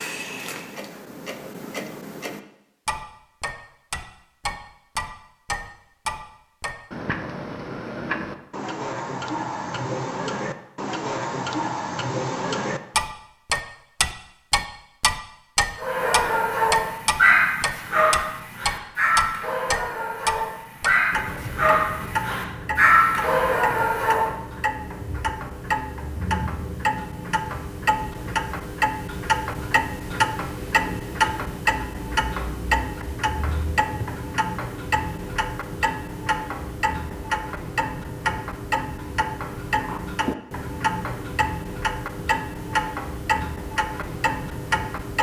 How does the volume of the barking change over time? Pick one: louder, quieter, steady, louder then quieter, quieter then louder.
quieter then louder.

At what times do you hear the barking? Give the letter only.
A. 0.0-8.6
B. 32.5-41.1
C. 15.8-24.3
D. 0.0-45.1
C.